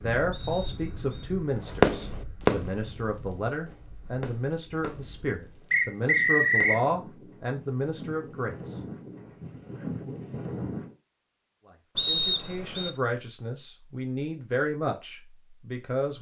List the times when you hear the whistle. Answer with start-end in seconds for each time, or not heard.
0.3-1.3, 5.7-6.8, 11.9-12.9.